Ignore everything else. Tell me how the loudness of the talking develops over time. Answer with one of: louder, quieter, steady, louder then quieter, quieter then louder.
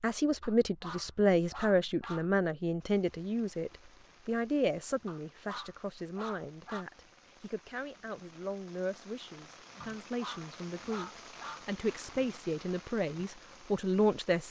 quieter then louder.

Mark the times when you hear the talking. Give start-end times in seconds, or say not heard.
0.0-14.4.